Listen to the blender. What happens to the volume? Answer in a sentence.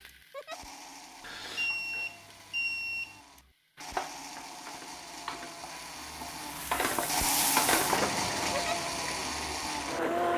The volume of the blender goes up.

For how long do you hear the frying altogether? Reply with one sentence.
The frying can be heard for 10 seconds in total.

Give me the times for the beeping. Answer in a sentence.
You can hear the beeping from 1.2 to 3.2 s.